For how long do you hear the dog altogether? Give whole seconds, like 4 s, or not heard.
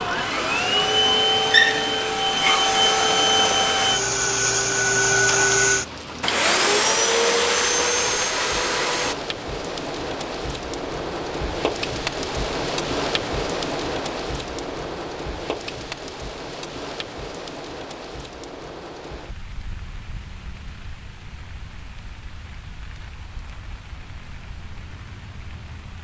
not heard.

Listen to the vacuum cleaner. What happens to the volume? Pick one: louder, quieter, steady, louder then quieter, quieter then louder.
steady.